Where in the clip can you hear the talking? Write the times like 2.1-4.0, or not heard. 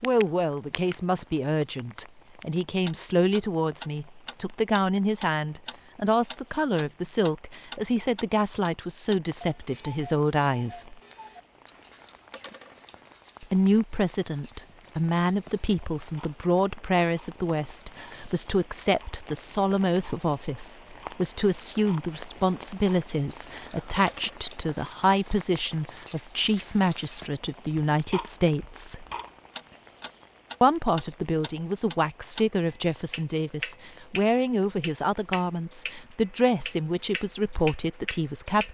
0.0-10.9, 13.4-29.1, 30.6-38.6.